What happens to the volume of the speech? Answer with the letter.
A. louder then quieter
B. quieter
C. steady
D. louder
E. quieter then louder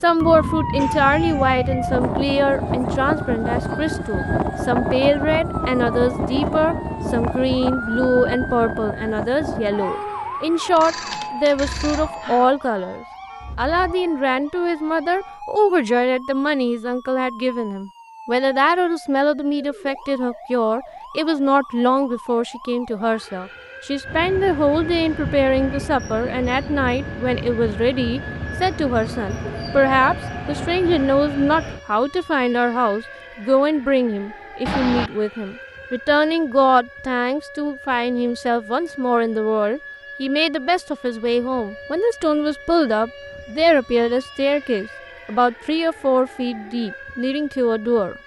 C.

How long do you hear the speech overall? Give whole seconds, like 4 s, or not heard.
48 s.